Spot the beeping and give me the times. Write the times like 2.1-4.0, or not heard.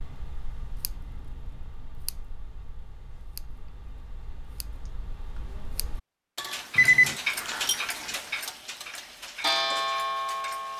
6.8-7.2.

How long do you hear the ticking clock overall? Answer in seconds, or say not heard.
11 s.